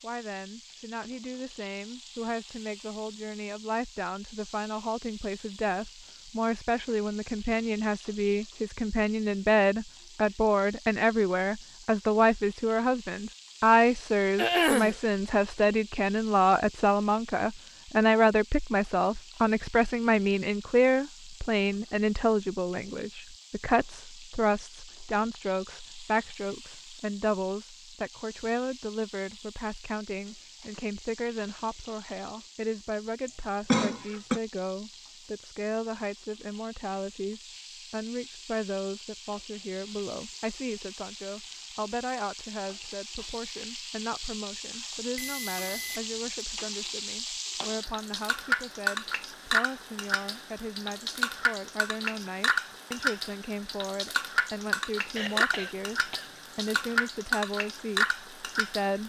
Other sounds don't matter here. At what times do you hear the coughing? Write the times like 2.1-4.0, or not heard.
14.3-14.9, 33.2-34.4, 55.1-57.0.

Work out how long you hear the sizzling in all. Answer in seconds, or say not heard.
59 s.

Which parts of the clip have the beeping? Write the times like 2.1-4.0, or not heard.
45.1-46.2.